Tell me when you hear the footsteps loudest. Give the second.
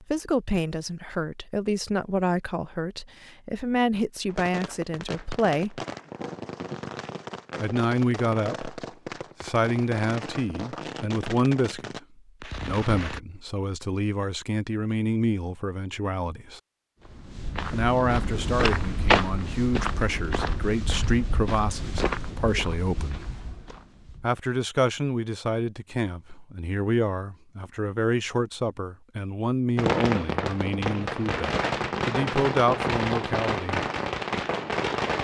19 s.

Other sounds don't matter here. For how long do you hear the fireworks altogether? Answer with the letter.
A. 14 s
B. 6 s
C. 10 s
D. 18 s
A.